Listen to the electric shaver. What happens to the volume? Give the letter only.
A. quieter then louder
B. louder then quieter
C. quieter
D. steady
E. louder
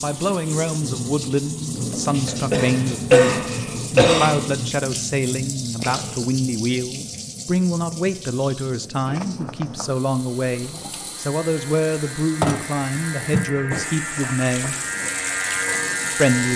E.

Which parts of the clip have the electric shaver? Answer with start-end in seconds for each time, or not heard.
11.1-16.5.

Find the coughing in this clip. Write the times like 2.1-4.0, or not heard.
2.2-4.3.